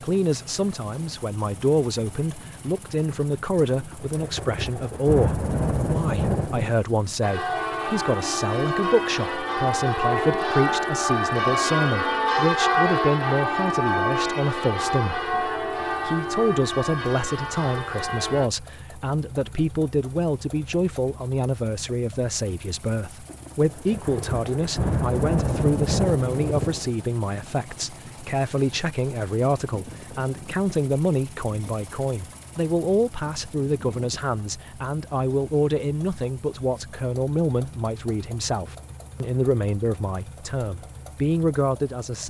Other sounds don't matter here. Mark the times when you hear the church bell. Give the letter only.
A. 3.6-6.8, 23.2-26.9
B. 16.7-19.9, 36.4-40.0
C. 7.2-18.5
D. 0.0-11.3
C.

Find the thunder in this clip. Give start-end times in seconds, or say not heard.
3.6-6.8, 23.2-26.9.